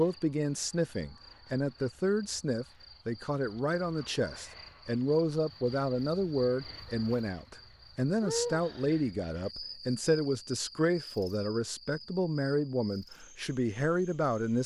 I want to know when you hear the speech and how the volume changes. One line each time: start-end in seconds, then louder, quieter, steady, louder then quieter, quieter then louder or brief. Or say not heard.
0.0-14.6 steady.